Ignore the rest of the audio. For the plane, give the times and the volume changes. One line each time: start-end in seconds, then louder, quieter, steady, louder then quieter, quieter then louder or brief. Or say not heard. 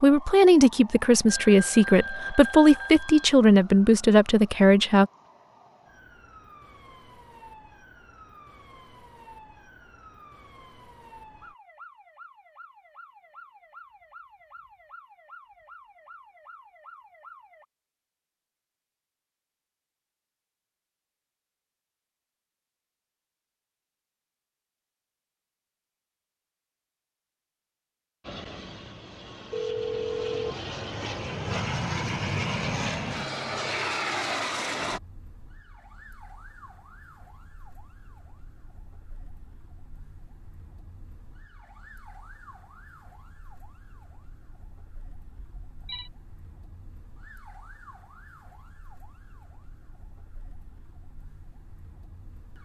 28.2-35.0 louder.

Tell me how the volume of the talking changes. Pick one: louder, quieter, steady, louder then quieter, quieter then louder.
steady.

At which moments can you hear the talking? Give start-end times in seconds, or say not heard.
0.0-5.1.